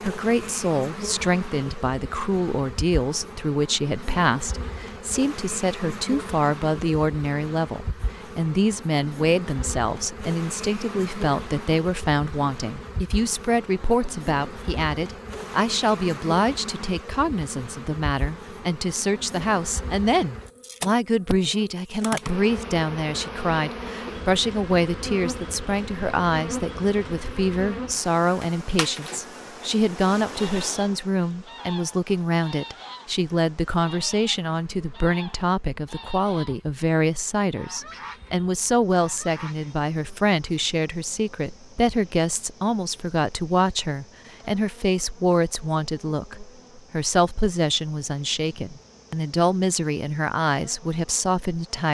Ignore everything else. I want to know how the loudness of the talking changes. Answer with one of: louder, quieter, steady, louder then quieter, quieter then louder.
steady.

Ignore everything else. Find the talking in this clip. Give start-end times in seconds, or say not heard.
0.0-51.8.